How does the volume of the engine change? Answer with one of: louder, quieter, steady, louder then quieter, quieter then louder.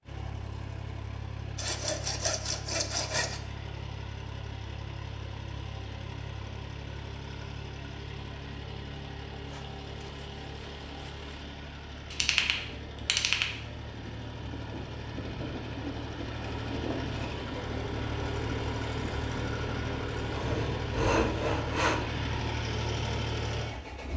louder.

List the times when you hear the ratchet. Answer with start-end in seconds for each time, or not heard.
12.1-13.5.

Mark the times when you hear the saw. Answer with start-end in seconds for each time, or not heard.
1.6-3.4, 9.4-11.3, 20.4-22.1.